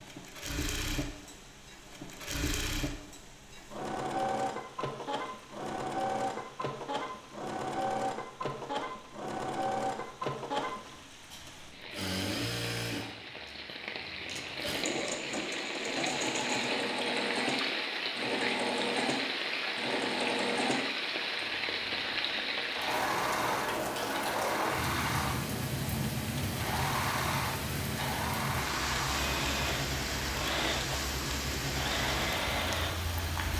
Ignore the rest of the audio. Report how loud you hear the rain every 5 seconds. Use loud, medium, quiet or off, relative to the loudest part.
quiet, quiet, medium, loud, loud, loud, loud.